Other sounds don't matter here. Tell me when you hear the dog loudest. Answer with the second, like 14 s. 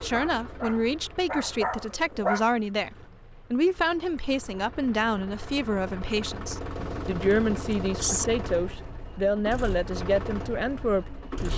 2 s.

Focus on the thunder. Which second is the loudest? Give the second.
8 s.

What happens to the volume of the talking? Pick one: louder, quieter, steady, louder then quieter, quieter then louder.
steady.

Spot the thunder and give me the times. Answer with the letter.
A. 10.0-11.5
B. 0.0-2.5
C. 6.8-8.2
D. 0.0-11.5
C.